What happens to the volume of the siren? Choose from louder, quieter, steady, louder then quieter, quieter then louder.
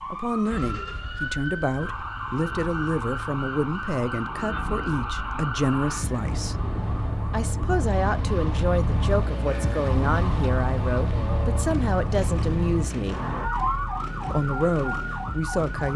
steady.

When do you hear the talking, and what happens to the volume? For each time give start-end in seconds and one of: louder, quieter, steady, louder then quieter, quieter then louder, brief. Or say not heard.
0.1-6.5 steady
7.3-13.3 steady
14.3-15.9 brief.